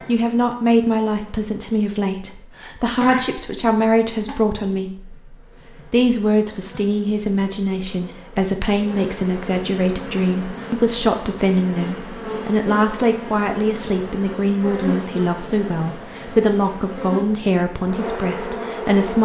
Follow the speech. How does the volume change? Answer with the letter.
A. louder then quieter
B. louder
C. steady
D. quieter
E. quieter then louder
C.